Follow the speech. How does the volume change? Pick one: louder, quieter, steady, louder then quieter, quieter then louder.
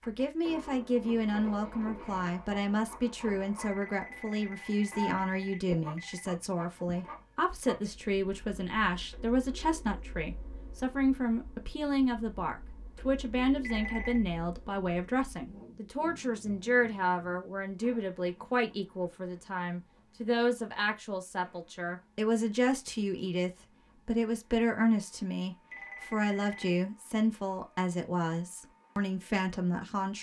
steady.